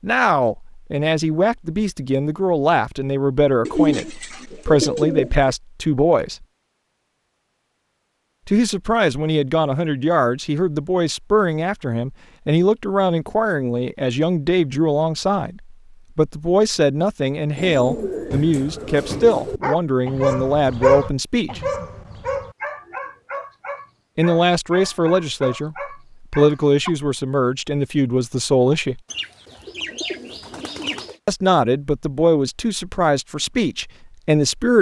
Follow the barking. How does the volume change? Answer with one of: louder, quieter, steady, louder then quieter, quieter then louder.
quieter.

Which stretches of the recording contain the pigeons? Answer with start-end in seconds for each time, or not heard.
3.6-5.5, 17.6-19.6, 29.1-31.1.